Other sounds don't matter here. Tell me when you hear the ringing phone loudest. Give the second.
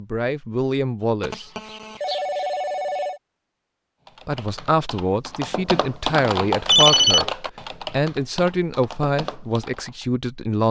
7 s.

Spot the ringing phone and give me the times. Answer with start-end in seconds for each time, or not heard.
1.2-3.2, 6.7-7.3.